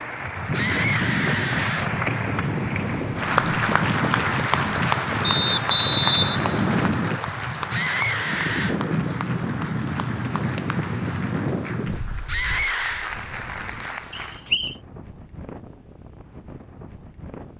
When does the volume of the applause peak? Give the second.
4 s.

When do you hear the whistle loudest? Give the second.
6 s.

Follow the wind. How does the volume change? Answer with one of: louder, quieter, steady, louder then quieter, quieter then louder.
quieter.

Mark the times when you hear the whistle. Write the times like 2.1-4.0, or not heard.
5.2-6.9, 14.1-14.8.